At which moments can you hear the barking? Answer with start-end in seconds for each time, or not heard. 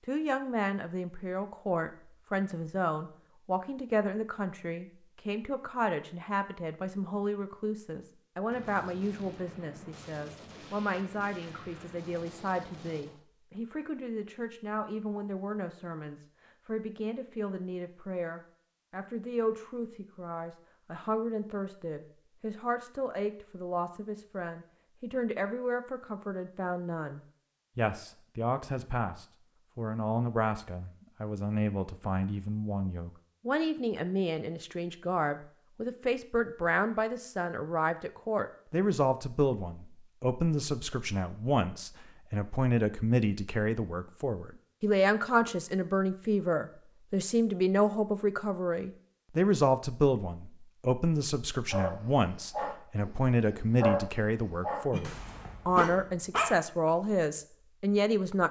51.7-56.9.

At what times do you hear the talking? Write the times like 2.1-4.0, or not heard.
0.1-58.4.